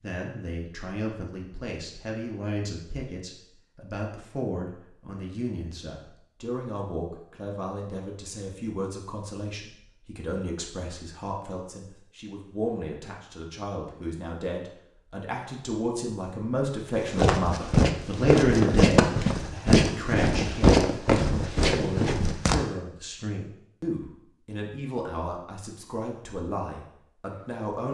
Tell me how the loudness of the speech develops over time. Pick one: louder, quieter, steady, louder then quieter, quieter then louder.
louder then quieter.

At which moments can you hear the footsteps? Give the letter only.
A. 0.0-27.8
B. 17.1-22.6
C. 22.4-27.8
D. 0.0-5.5
B.